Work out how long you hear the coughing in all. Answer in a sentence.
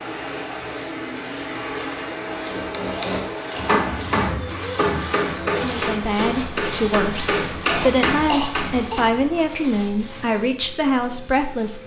You can hear the coughing for 2 seconds altogether.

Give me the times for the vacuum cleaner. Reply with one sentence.
You can hear the vacuum cleaner from 0.0 to 11.8 s.